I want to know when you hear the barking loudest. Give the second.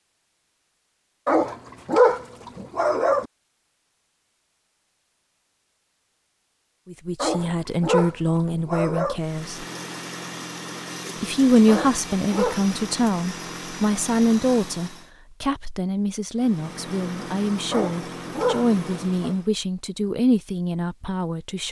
2 s.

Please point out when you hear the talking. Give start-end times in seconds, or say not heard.
6.8-9.7, 11.2-21.6.